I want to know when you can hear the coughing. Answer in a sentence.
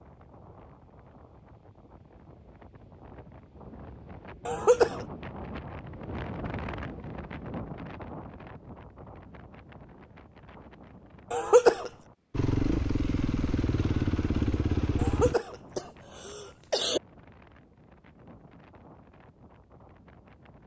You can hear the coughing from 4.5 to 5.0 s, from 11.3 to 11.9 s and from 14.9 to 17.0 s.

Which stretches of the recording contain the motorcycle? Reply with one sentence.
The motorcycle can be heard from 12.3 to 15.3 s.